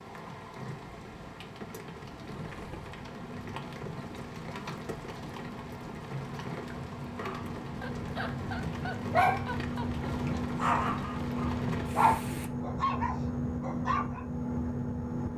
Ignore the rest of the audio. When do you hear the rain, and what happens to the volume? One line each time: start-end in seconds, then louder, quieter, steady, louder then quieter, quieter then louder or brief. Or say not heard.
0.0-12.5 steady.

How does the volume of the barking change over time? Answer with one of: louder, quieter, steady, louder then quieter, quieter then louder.
louder then quieter.